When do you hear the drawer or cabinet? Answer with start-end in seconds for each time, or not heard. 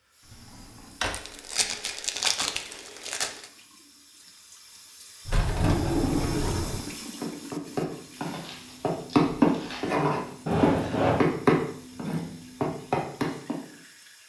0.3-1.2, 5.2-6.8, 10.4-11.2.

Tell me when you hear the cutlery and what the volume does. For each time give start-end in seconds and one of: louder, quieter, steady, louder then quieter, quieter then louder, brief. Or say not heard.
not heard.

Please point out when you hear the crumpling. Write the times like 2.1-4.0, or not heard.
1.1-3.5, 8.2-10.0.